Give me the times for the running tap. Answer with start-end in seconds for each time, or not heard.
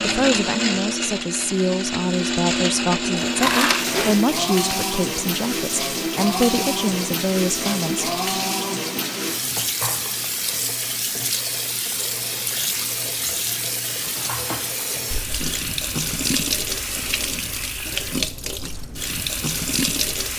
3.2-20.3.